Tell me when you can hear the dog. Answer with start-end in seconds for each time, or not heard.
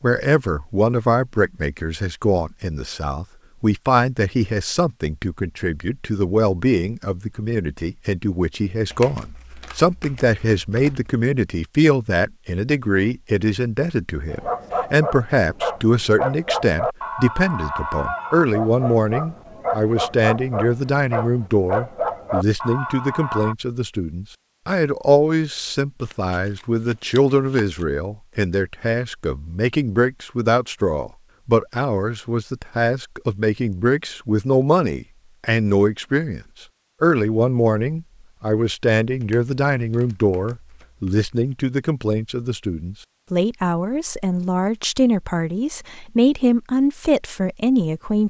14.3-23.6.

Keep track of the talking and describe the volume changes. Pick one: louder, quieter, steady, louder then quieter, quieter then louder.
steady.